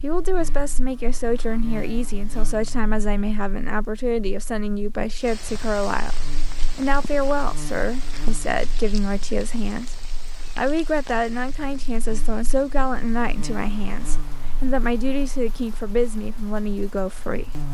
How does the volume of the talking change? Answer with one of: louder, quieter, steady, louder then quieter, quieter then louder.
steady.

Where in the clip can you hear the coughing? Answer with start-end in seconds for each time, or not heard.
not heard.